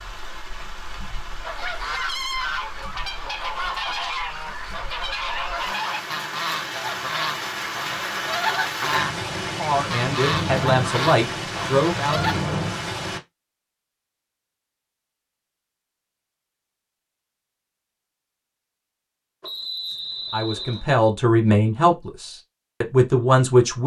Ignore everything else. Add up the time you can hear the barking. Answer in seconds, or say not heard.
not heard.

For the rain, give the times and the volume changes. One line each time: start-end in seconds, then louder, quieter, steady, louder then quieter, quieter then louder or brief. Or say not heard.
0.0-13.2 louder.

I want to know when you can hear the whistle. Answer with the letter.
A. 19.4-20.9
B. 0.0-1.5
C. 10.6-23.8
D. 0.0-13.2
A.